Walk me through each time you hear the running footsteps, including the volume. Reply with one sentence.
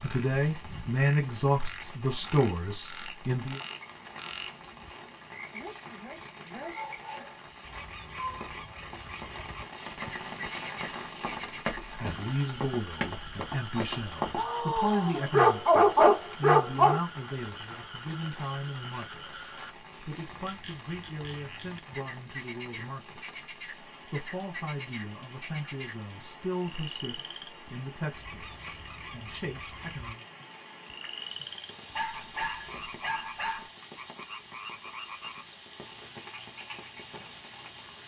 You can hear the running footsteps from 8.3 to 14.5 s, getting louder.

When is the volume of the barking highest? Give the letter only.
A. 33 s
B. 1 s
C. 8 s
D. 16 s
D.